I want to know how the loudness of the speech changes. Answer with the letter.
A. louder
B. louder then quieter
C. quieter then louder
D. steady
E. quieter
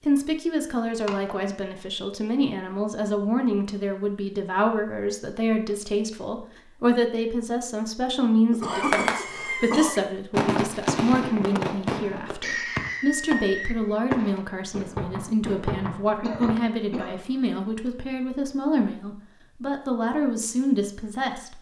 D.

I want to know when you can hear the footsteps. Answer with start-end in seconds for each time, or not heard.
not heard.